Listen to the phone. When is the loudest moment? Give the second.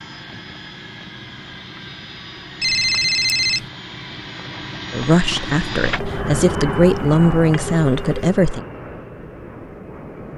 3 s.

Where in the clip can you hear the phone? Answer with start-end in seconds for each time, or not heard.
2.6-3.7, 6.0-8.3.